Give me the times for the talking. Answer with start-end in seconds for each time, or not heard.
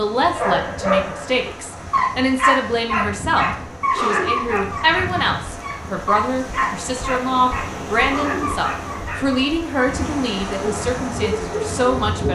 0.0-12.2.